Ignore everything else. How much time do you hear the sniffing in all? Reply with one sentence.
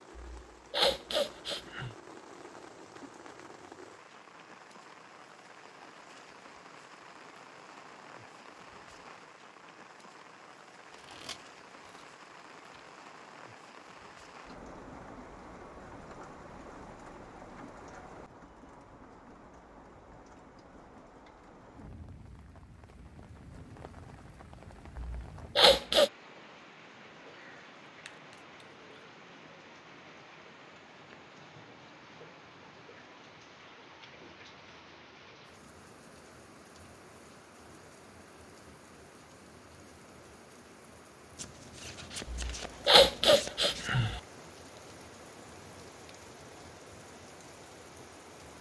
You can hear the sniffing for 5 seconds altogether.